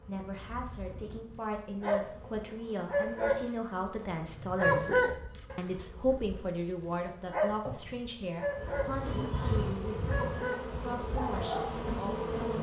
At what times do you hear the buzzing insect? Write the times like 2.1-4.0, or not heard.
0.0-12.5.